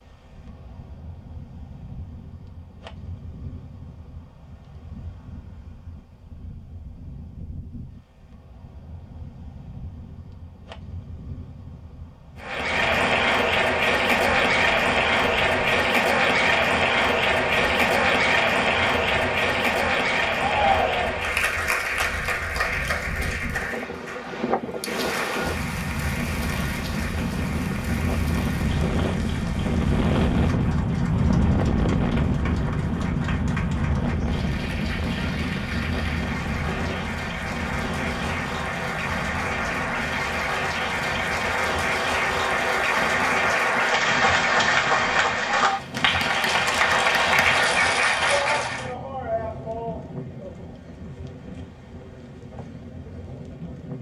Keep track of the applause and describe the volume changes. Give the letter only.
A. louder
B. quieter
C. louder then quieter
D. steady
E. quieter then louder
E.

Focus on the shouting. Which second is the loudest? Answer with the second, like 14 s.
21 s.